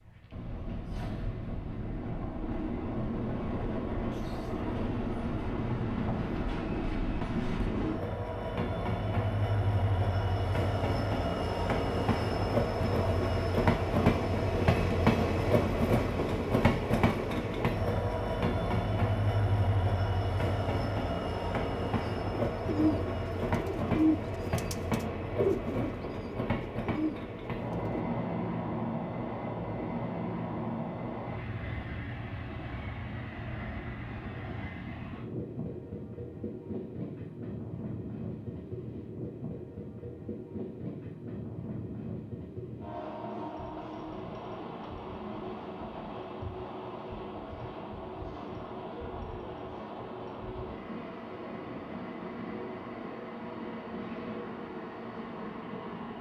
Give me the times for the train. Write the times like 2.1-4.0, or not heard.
0.0-56.1.